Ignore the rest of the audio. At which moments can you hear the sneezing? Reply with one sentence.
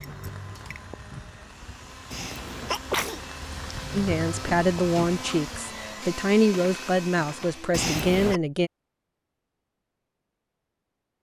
The sneezing can be heard from 2.1 to 3.2 s and from 7.7 to 8.4 s.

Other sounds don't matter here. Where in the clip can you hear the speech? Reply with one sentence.
The speech can be heard from 4.0 to 8.7 s.